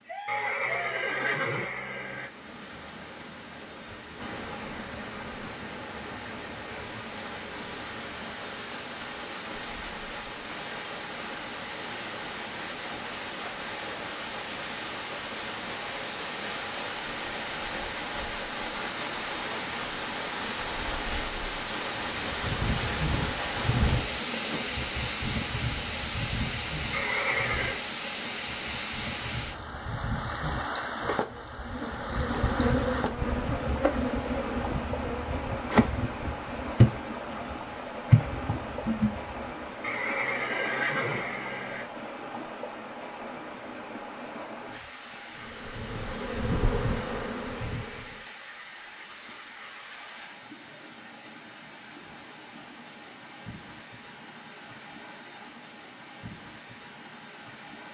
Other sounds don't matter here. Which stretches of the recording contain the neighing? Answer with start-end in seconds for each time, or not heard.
0.2-2.3, 26.9-27.8, 39.8-41.9.